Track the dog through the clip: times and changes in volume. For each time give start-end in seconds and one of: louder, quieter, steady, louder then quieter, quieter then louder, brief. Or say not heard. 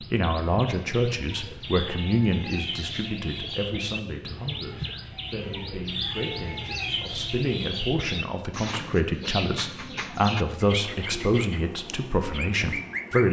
not heard.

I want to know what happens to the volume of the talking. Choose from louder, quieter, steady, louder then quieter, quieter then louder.
quieter then louder.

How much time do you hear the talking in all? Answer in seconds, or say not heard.
13 s.